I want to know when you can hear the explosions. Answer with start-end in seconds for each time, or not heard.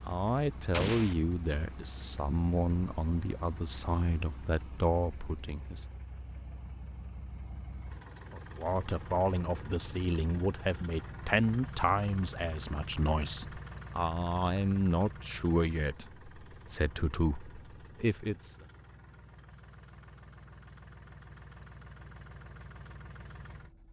0.7-1.1.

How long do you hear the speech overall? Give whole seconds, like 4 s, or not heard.
16 s.